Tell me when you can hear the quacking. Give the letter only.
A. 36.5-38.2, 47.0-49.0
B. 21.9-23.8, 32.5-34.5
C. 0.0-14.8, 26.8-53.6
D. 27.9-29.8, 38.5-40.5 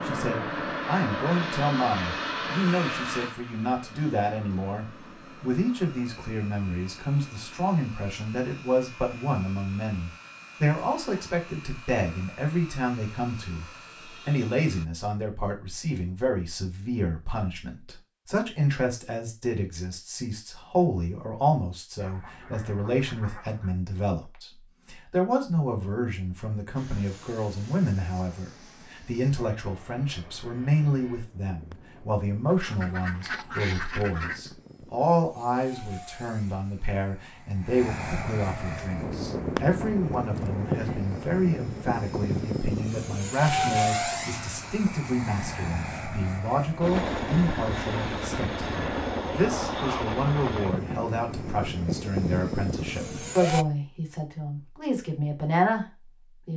B.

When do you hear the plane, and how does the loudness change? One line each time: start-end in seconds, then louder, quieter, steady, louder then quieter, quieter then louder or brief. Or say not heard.
0.0-14.8 quieter
26.8-53.6 louder.